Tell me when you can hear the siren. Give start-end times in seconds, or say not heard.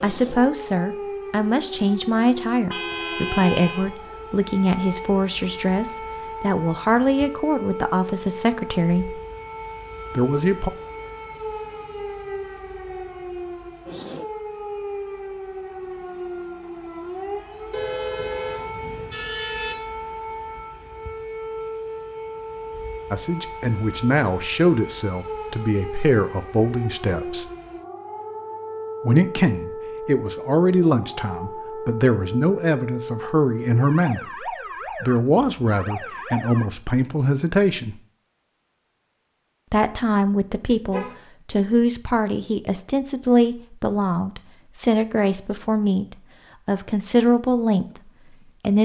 0.0-36.7.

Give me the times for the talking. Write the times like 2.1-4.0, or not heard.
0.0-9.2, 10.1-10.7, 23.1-27.4, 29.0-38.0, 39.7-48.8.